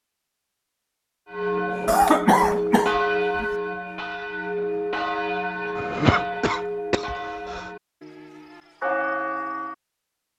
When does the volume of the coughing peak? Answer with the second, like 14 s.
2 s.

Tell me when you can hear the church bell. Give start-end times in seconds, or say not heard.
1.3-9.8.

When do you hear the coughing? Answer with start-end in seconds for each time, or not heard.
1.9-3.5, 5.8-7.6.